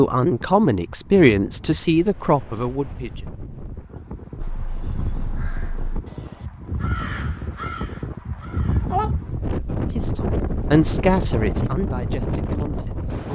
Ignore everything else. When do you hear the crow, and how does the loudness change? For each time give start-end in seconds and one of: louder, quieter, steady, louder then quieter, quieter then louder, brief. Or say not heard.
4.3-9.2 louder then quieter.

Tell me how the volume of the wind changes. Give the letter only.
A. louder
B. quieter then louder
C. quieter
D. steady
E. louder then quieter
A.